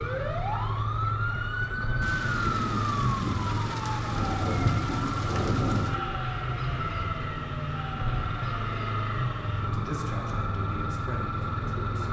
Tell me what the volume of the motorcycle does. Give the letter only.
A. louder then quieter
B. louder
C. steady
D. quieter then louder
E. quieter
C.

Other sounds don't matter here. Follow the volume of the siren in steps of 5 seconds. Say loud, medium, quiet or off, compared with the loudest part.
loud, medium, medium.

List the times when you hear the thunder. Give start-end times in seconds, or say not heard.
2.0-6.0.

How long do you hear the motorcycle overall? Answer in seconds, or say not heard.
12 s.